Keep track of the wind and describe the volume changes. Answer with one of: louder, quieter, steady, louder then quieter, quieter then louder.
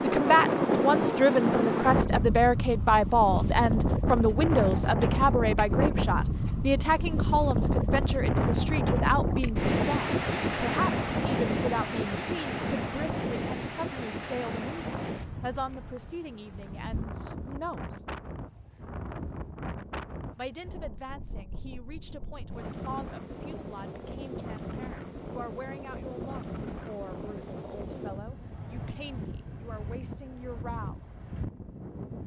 quieter.